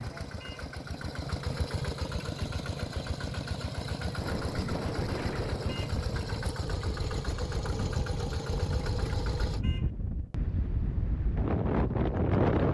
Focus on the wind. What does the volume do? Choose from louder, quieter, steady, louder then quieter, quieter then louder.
quieter then louder.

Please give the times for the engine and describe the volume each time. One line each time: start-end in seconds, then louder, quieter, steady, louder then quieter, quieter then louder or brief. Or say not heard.
0.0-9.6 steady.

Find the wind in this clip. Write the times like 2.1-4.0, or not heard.
4.2-12.6.